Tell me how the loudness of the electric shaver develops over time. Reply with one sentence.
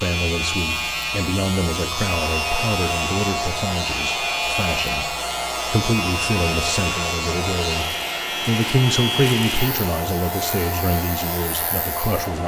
The loudness of the electric shaver goes down.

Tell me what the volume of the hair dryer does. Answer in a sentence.
The loudness of the hair dryer stays about the same.